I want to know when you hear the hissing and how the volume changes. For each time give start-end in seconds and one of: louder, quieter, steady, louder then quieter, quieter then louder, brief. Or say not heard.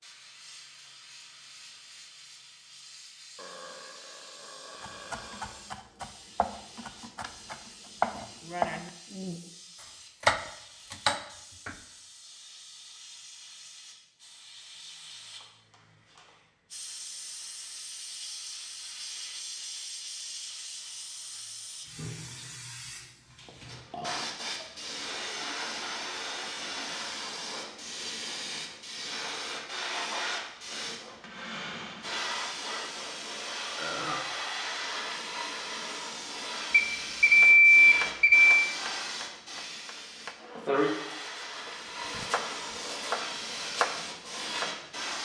0.0-45.2 louder.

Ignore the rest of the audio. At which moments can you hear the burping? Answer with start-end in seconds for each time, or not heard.
3.4-5.7, 23.4-24.9, 33.8-34.3.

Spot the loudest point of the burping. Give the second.
34 s.